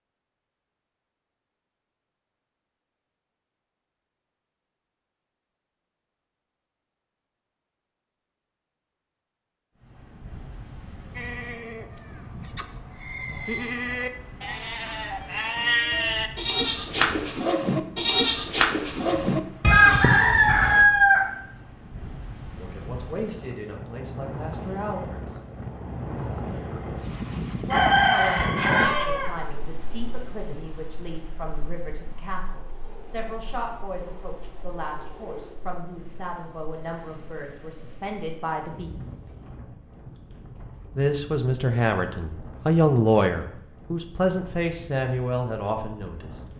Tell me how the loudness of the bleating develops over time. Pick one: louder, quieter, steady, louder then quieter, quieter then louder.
louder.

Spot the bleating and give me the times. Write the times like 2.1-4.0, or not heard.
11.2-20.9.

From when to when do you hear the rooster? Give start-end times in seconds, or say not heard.
19.6-21.2, 27.7-29.3.